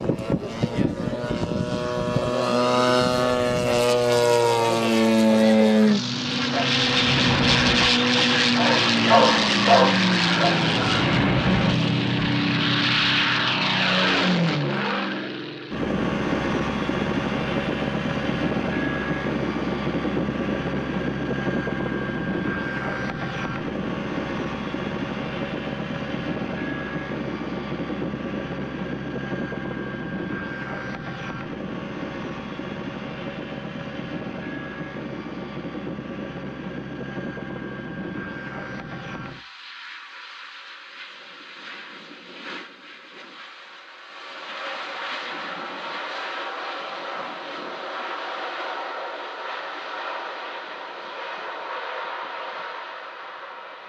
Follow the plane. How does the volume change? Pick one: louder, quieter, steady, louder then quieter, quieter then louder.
quieter.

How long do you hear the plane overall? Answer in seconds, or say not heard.
54 s.